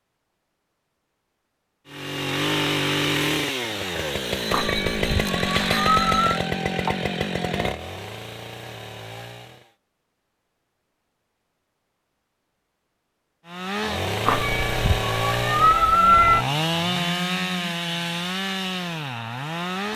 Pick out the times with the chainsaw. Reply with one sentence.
The chainsaw can be heard from 1.9 to 9.7 s and from 13.4 to 19.9 s.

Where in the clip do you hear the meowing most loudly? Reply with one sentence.
The loudest moment of the meowing is at 16 seconds.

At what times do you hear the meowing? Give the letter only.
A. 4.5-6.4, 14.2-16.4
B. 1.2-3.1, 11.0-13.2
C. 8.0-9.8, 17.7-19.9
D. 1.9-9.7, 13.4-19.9
A.